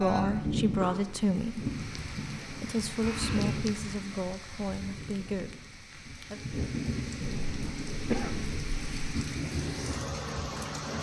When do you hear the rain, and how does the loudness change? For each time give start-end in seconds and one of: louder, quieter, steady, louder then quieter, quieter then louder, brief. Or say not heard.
0.0-10.9 quieter then louder.